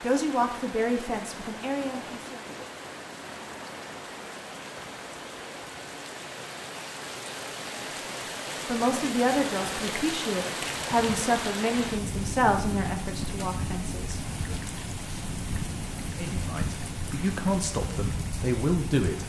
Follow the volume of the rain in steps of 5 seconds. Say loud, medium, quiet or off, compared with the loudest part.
medium, loud, loud, loud.